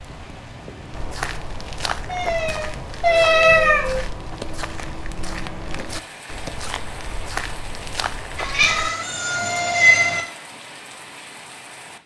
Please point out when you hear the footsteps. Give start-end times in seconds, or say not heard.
0.9-8.9.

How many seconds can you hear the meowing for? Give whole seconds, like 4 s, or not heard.
4 s.